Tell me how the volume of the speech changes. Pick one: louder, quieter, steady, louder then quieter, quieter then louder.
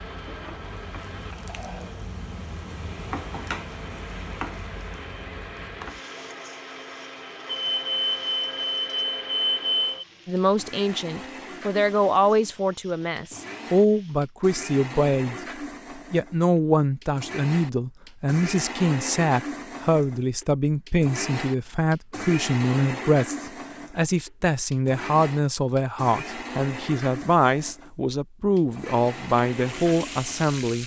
steady.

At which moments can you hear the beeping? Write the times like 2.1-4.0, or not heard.
7.5-10.1.